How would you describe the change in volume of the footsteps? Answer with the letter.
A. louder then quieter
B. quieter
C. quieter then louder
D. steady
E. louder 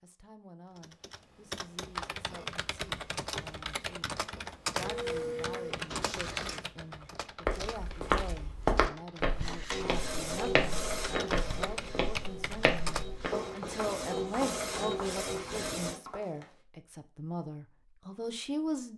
B.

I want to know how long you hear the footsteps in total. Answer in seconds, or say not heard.
9 s.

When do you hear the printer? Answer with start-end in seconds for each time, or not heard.
4.7-6.6, 9.3-16.0.